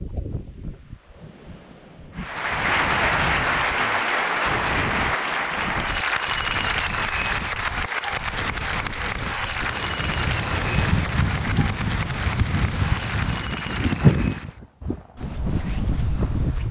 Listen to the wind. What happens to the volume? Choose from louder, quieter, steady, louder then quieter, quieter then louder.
louder.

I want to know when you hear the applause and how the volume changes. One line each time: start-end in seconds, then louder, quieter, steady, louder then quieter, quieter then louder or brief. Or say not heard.
2.1-14.6 quieter.